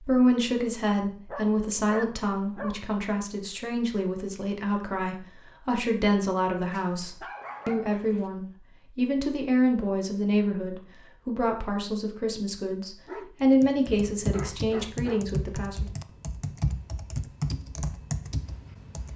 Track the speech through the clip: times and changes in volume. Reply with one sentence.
You can hear the speech from 0.0 to 15.9 s, at a steady volume.